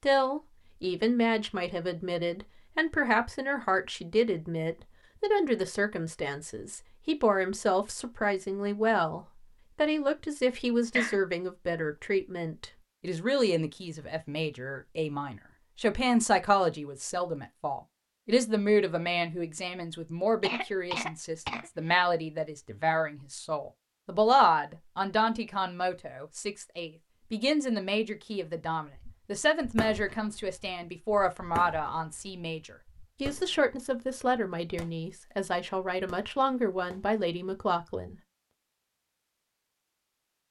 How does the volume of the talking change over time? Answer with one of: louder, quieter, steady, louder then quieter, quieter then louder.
steady.